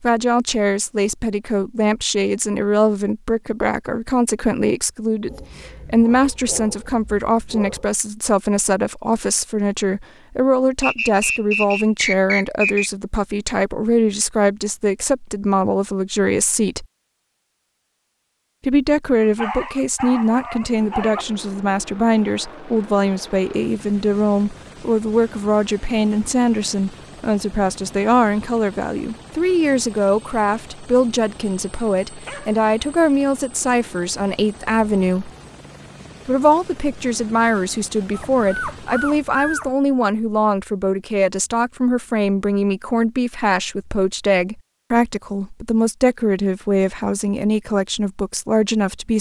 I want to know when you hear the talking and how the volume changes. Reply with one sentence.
You can hear the talking from 0.0 to 16.9 s, at a steady volume; from 18.6 to 35.3 s, at a steady volume; and from 36.2 to 49.1 s, at a steady volume.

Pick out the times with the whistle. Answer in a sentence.
The whistle can be heard from 10.8 to 12.9 s.